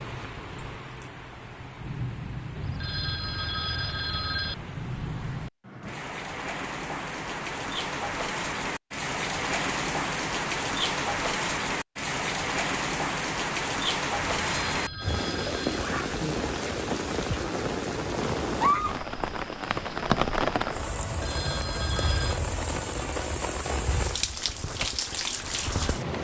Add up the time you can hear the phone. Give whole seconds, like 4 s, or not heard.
5 s.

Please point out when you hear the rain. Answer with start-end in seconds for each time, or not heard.
0.0-26.1.